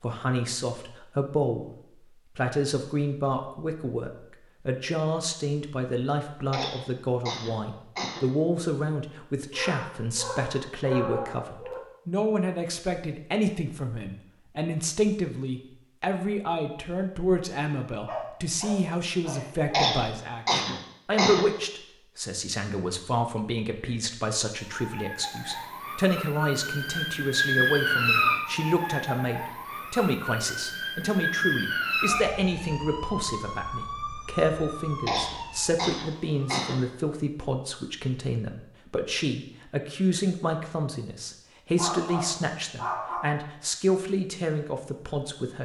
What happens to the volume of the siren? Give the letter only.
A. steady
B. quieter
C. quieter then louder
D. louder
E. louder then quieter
E.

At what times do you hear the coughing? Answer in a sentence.
The coughing can be heard from 6.5 to 8.2 s, from 19.7 to 21.5 s and from 35.0 to 36.8 s.